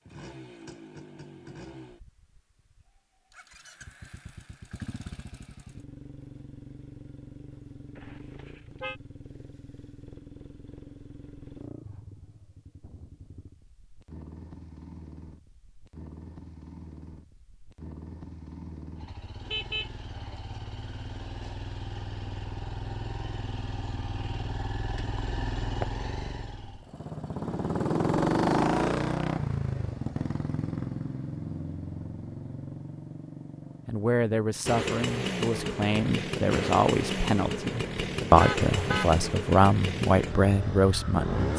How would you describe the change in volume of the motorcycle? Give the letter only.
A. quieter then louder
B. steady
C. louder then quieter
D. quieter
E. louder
E.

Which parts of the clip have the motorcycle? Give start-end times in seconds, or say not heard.
0.1-41.5.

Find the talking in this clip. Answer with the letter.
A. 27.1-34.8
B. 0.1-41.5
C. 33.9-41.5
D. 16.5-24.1
C.